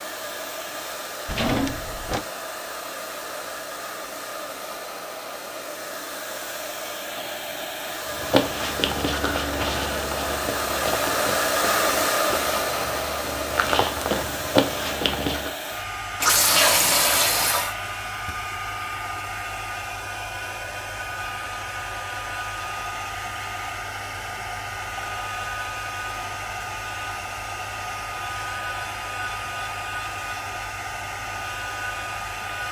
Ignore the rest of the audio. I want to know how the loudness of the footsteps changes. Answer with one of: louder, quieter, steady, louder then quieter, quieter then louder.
quieter then louder.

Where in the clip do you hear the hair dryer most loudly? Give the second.
12 s.